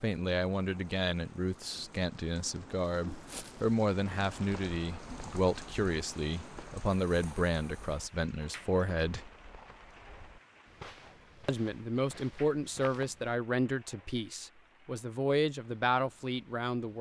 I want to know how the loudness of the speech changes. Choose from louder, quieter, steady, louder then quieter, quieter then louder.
steady.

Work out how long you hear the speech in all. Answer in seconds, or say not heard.
15 s.